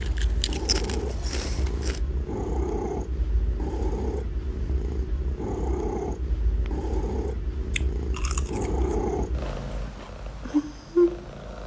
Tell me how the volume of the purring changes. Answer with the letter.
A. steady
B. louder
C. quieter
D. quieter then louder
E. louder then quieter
B.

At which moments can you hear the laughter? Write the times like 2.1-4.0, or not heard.
not heard.